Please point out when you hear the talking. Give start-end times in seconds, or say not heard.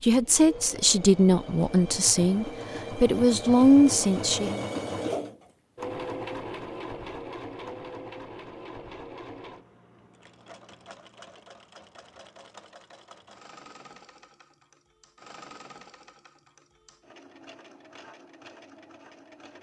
0.0-4.6.